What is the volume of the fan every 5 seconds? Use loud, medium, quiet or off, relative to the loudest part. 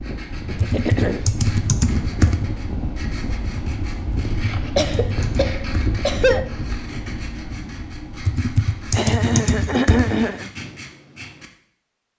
loud, loud, off.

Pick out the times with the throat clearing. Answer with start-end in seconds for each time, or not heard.
0.6-1.3, 4.5-6.5, 8.9-10.5.